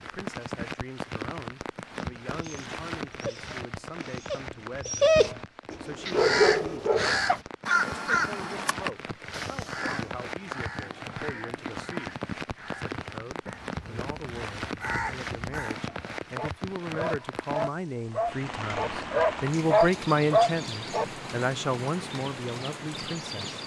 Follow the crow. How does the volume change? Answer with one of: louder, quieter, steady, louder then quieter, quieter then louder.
quieter then louder.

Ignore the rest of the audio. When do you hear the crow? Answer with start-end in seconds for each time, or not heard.
6.0-15.8.